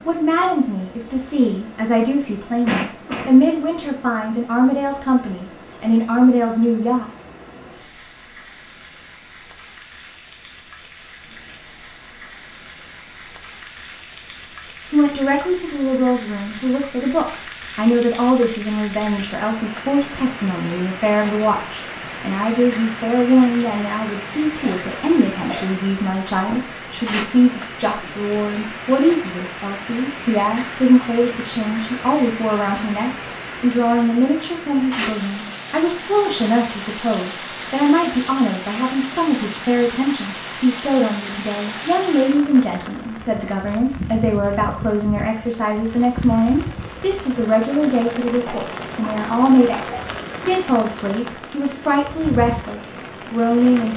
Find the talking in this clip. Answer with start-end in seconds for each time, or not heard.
0.1-7.0, 14.9-53.9.